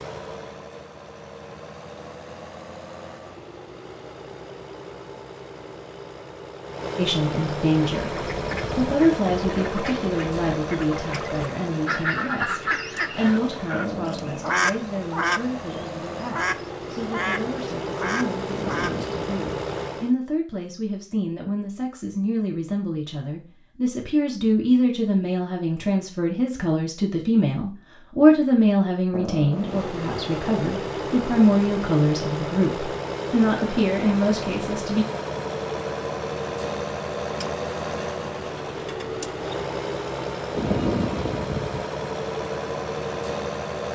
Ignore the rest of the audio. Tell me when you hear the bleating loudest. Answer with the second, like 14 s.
41 s.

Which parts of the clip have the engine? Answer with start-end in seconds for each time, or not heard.
0.0-20.1, 29.5-43.9.